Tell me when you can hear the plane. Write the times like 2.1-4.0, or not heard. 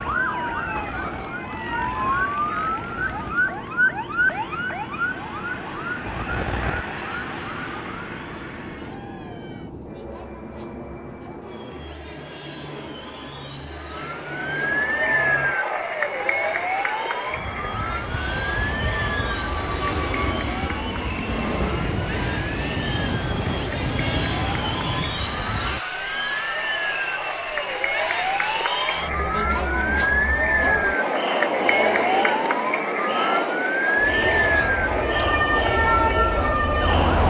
0.0-25.8, 34.0-37.0.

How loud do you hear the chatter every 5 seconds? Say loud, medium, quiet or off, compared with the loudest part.
quiet, quiet, quiet, quiet, medium, medium, loud, loud.